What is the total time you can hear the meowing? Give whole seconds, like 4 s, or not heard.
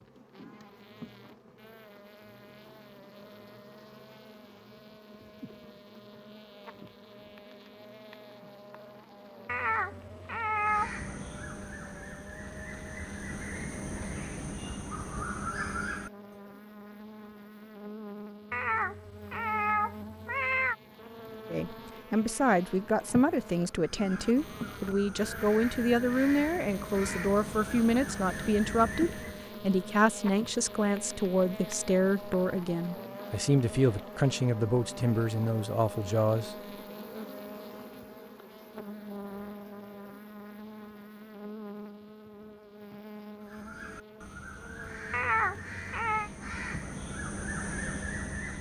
5 s.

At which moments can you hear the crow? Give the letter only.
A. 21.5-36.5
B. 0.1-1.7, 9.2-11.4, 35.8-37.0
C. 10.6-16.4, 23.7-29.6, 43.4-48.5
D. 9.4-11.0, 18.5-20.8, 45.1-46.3
C.